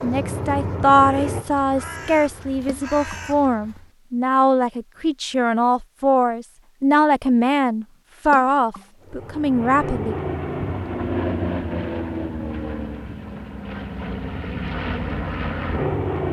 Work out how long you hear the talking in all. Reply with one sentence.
You can hear the talking for 10 seconds altogether.